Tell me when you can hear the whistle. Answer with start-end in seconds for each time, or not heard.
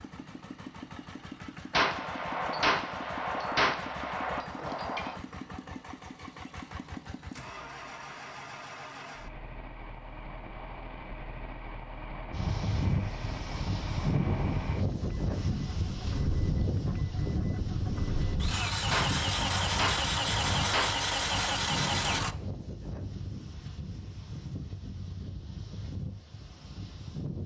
not heard.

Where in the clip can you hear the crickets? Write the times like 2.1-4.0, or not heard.
not heard.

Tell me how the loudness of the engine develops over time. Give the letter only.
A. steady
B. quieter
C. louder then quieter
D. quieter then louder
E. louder
E.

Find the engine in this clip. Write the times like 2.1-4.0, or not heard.
0.0-22.4.